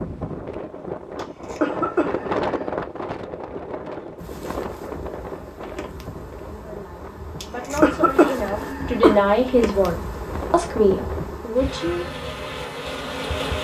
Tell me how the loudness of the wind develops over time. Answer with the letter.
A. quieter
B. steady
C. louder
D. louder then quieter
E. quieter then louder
A.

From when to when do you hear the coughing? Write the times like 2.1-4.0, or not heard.
1.1-2.5, 7.4-9.2.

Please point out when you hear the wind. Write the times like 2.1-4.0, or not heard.
0.0-11.4.